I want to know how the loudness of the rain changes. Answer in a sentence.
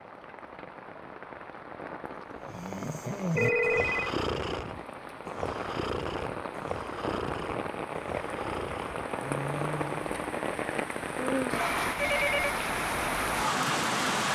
The volume of the rain goes up.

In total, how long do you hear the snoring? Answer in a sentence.
You can hear the snoring for 8 seconds altogether.